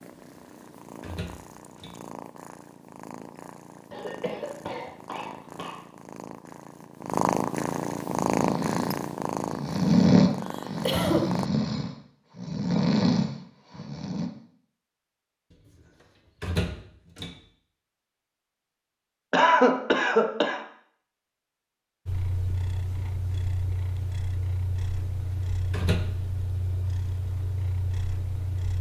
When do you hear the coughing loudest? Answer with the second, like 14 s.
20 s.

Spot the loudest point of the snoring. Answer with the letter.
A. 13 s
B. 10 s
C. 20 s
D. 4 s
B.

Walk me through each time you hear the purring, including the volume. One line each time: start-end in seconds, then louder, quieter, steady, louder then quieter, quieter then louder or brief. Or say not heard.
0.0-11.5 louder then quieter
22.1-28.7 steady.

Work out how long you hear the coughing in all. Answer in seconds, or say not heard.
4 s.